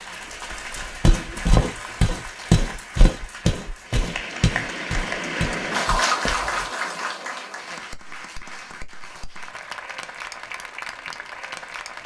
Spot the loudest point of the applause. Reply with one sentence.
The loudest moment of the applause is at 6 seconds.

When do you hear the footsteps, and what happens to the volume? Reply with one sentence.
The footsteps can be heard from 1.0 to 6.7 s, getting quieter.